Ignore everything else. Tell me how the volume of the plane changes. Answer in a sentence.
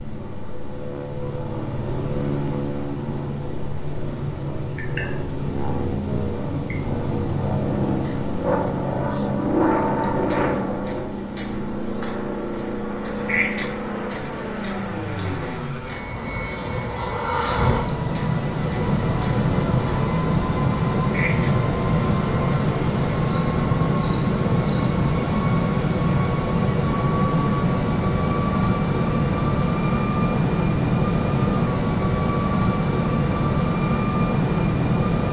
The volume of the plane goes up.